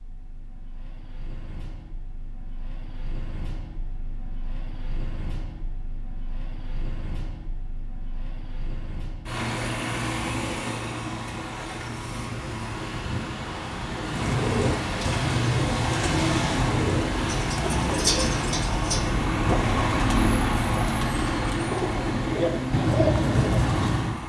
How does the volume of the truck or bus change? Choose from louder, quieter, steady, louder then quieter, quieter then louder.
louder.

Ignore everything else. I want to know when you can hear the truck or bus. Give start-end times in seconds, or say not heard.
0.0-24.2.